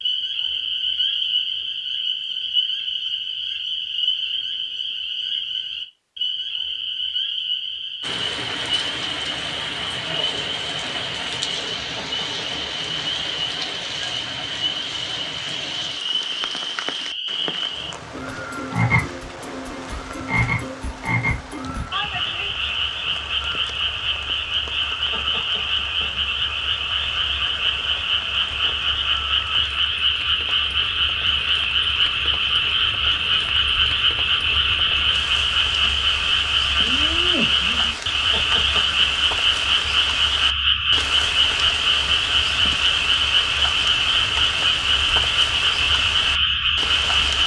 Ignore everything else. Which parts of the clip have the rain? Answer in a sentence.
The rain can be heard from 8.0 to 47.4 s.